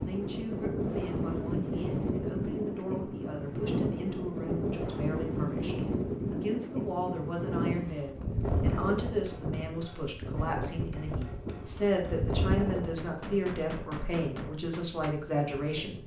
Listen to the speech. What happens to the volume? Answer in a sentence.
The volume of the speech goes up.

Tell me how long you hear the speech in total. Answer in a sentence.
You can hear the speech for 16 seconds altogether.